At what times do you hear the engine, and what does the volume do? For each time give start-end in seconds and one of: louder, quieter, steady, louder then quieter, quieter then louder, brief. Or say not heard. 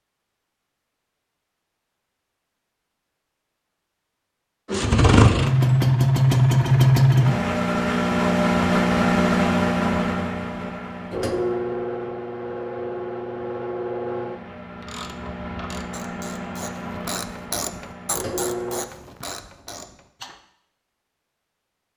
4.7-18.9 quieter.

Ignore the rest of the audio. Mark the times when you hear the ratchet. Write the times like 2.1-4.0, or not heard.
14.6-20.4.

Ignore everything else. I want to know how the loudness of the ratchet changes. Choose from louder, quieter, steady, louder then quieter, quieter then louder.
louder then quieter.